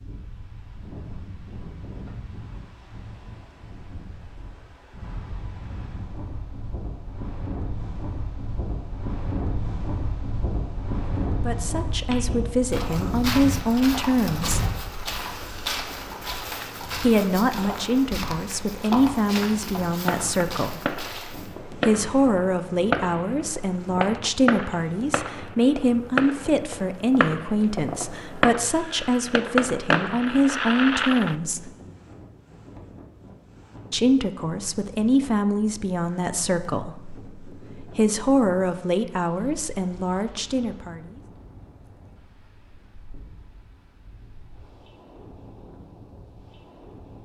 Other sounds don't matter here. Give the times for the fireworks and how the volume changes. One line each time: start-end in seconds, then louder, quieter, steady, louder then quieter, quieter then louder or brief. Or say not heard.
19.9-31.4 louder.